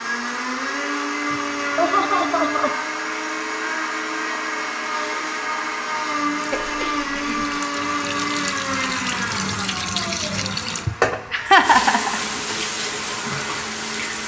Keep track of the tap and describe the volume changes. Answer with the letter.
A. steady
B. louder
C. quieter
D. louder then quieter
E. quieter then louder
B.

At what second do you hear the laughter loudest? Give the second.
12 s.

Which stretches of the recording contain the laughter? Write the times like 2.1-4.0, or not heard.
1.3-2.7, 6.5-7.5, 10.8-12.2.